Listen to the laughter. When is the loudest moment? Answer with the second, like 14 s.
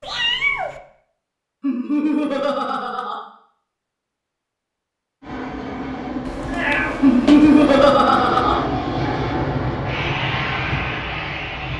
7 s.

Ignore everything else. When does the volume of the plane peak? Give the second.
9 s.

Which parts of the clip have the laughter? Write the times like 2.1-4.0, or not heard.
1.6-3.2, 7.0-8.6.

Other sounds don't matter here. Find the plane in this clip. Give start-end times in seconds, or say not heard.
5.2-11.7.